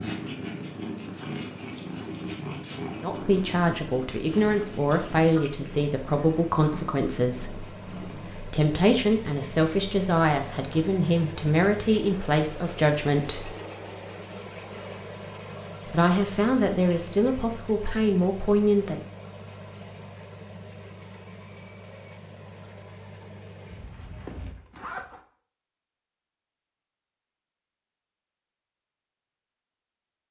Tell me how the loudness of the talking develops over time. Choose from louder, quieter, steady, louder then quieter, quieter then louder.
steady.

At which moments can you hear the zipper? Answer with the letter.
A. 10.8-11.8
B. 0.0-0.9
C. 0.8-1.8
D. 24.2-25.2
D.